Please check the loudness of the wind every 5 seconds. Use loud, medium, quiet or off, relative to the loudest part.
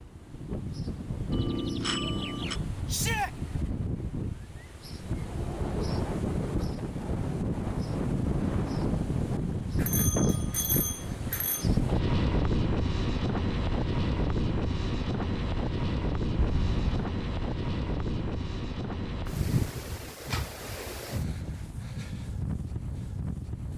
medium, loud, loud, loud, medium.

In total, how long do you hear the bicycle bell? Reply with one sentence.
The bicycle bell can be heard for 4 seconds in total.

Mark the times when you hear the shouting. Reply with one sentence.
You can hear the shouting from 2.9 to 3.3 s.